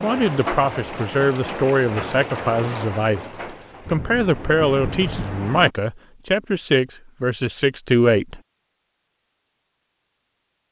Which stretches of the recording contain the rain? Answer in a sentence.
You can hear the rain from 0.0 to 5.7 s.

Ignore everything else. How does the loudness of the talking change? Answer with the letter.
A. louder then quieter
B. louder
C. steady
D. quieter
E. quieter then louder
C.